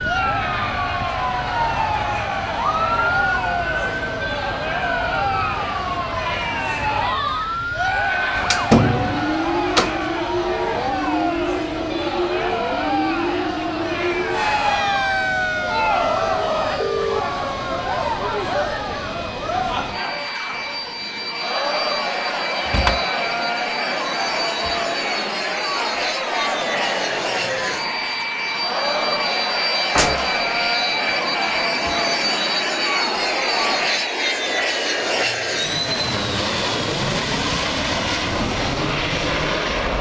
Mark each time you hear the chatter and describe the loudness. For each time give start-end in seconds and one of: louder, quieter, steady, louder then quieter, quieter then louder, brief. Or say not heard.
0.0-34.1 steady.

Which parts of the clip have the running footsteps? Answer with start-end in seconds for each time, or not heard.
not heard.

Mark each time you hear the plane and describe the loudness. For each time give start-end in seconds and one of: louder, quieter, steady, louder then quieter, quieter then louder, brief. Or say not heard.
0.0-39.9 louder.